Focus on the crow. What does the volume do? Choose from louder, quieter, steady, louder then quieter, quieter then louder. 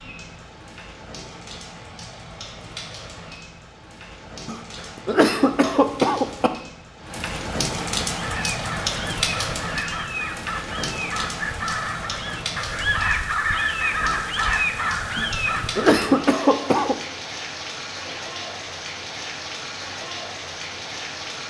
louder.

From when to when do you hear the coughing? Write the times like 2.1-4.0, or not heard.
4.5-6.5, 15.2-16.9.